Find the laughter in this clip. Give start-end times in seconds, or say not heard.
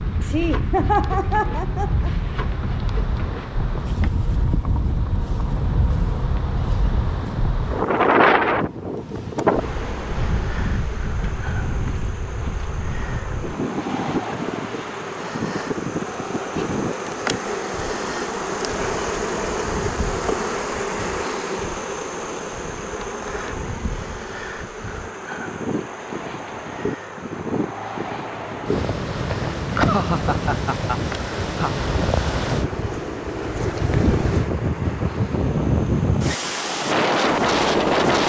0.2-2.1, 29.4-31.8.